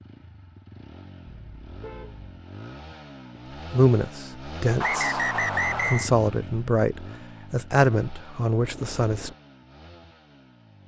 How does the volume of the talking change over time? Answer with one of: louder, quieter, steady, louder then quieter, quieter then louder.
louder then quieter.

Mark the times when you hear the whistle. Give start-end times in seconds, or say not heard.
4.8-6.1.